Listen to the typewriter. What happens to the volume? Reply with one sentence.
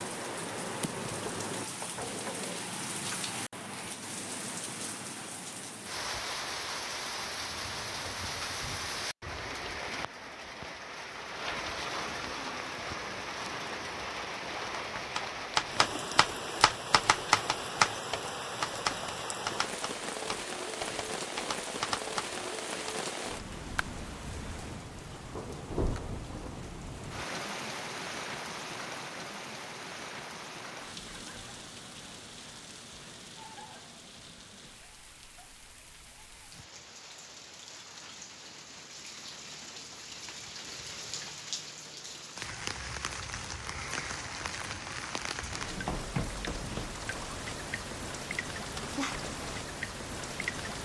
The volume of the typewriter goes down.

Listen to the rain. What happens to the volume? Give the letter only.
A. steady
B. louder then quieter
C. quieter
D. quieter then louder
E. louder
D.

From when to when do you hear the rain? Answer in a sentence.
The rain can be heard from 0.0 to 50.8 s.